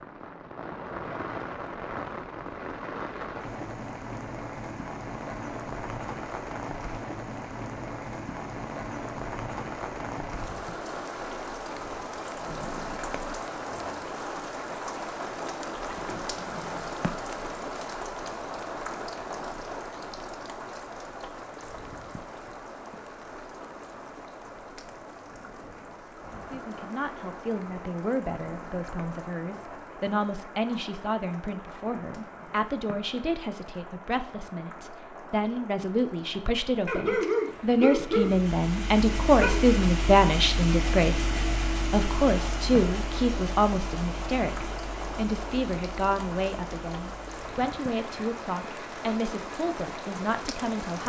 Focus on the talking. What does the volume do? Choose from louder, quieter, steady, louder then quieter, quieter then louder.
louder then quieter.